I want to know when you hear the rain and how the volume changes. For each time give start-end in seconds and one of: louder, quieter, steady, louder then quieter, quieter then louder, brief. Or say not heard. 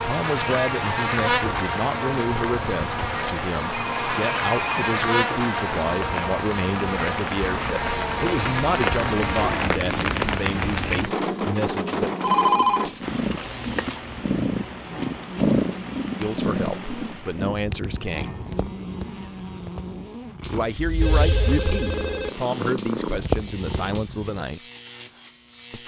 0.2-17.6 louder then quieter.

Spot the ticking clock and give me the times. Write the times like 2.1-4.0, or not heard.
not heard.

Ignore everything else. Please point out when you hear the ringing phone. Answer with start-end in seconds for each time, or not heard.
3.7-4.9, 12.2-13.9, 20.8-22.3.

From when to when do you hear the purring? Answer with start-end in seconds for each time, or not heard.
12.9-24.4.